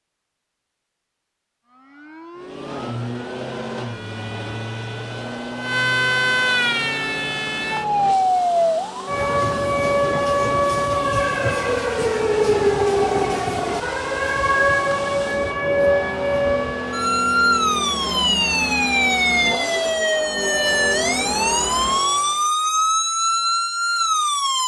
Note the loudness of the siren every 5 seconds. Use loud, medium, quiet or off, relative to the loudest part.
quiet, loud, loud, loud, loud.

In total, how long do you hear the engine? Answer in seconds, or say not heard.
20 s.